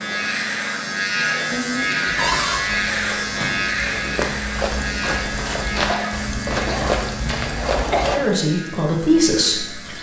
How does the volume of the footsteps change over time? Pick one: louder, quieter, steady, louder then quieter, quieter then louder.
louder.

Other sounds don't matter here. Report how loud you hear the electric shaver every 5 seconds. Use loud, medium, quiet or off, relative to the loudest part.
loud, medium.